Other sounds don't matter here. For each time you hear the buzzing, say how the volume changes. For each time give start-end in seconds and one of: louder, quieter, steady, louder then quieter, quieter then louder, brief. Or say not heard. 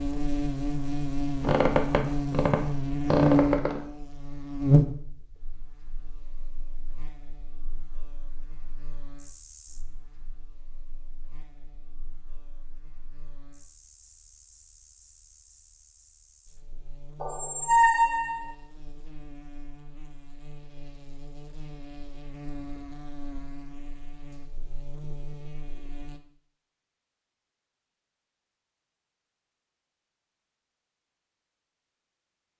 0.0-26.2 quieter then louder.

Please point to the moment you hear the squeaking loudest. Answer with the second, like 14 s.
18 s.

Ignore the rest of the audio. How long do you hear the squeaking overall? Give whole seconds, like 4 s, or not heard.
4 s.